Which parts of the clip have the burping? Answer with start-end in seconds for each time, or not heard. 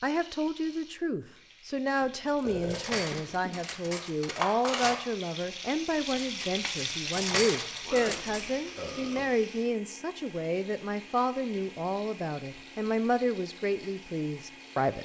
2.0-3.5, 7.8-9.3.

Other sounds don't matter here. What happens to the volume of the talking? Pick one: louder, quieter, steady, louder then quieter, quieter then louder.
steady.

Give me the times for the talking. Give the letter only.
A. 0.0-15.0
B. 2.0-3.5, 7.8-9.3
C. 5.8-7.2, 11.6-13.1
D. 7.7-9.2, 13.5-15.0
A.